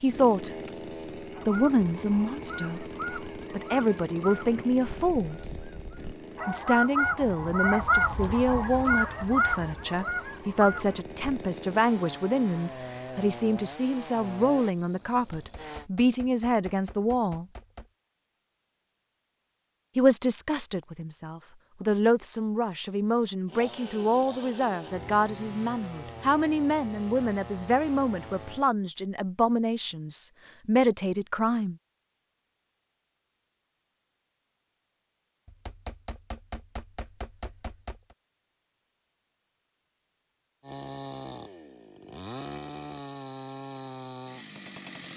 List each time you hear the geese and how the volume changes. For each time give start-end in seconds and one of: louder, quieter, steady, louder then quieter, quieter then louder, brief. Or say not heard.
1.4-11.2 louder.